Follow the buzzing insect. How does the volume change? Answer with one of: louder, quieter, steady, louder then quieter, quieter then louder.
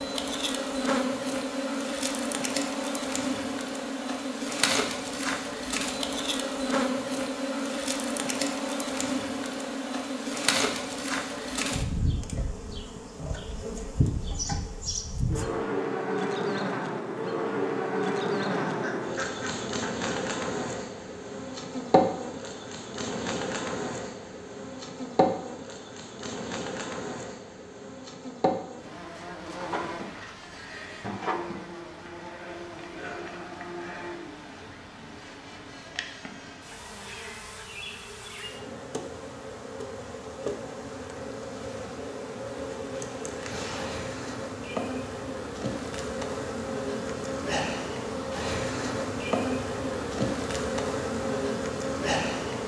quieter then louder.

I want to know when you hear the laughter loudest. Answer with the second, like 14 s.
19 s.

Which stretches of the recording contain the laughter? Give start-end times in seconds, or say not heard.
18.4-20.1.